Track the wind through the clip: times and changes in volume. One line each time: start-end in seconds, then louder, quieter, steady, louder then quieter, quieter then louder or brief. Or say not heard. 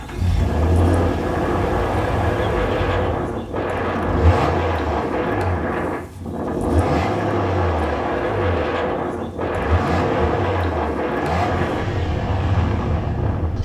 0.0-13.6 steady.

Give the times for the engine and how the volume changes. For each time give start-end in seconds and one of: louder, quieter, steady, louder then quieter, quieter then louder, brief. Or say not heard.
0.0-13.6 steady.